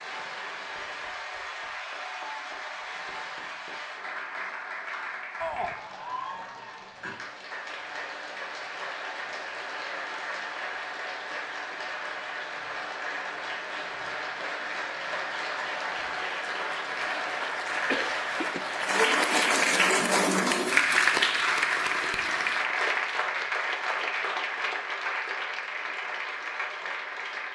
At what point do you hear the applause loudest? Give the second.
21 s.